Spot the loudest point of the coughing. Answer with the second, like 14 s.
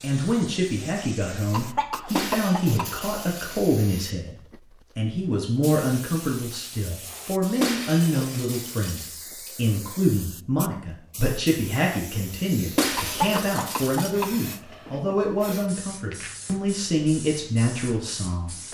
13 s.